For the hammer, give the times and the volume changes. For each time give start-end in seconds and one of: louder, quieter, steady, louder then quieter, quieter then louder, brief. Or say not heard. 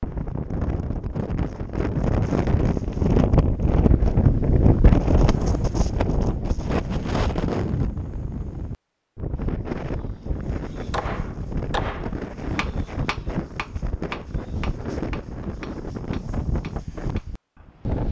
10.9-17.2 quieter.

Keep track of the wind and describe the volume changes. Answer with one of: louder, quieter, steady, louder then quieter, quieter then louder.
quieter.